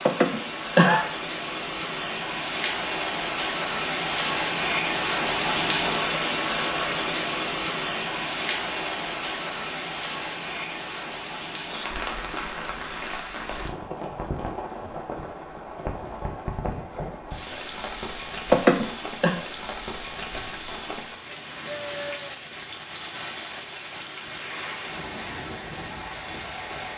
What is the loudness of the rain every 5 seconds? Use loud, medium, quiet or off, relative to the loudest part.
loud, loud, medium, medium, medium, medium.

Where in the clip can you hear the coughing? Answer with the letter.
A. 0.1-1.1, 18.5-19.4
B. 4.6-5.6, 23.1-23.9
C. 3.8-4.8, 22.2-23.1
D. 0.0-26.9
A.